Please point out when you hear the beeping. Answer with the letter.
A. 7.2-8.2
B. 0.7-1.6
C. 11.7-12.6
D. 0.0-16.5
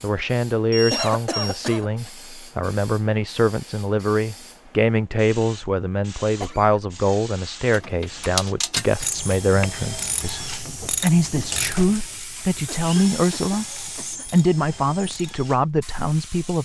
B.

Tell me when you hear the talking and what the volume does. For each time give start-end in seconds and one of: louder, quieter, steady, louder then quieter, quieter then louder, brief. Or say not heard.
0.0-16.5 steady.